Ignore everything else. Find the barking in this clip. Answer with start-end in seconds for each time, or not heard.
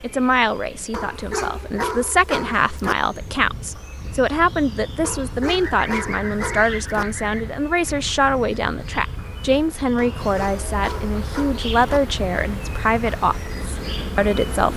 0.9-3.0, 5.0-7.0, 9.9-12.0.